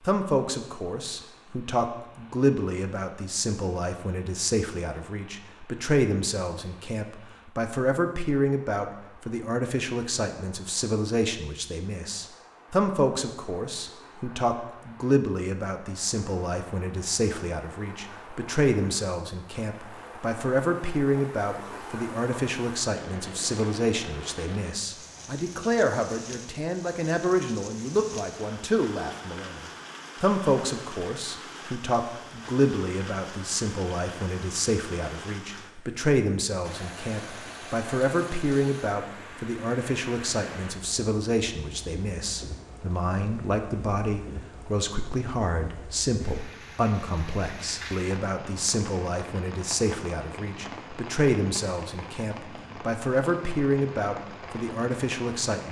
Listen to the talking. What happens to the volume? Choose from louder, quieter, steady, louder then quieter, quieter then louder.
steady.